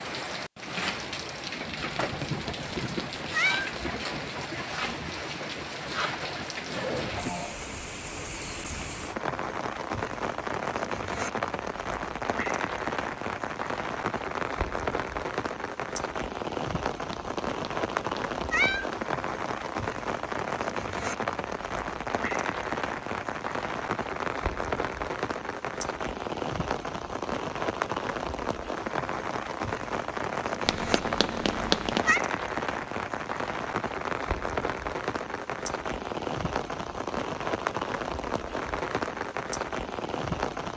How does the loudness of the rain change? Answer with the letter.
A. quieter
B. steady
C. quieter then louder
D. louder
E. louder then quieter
B.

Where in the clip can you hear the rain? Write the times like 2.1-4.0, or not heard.
0.0-40.7.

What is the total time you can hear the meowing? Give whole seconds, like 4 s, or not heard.
5 s.